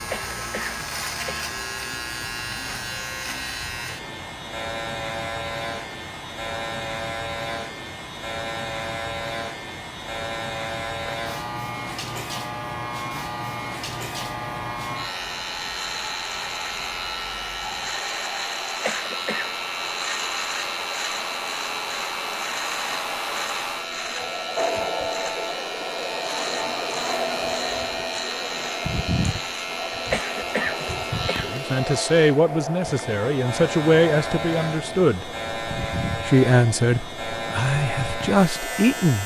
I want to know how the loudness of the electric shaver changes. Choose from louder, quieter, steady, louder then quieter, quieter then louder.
steady.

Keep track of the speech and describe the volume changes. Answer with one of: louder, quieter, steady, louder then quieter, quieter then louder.
steady.